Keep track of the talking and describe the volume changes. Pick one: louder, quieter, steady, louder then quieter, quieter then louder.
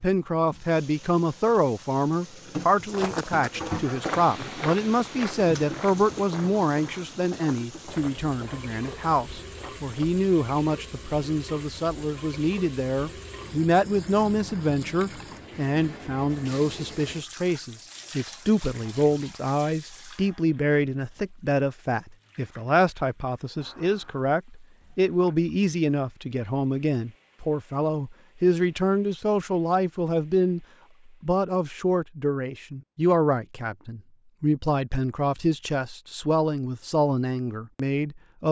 steady.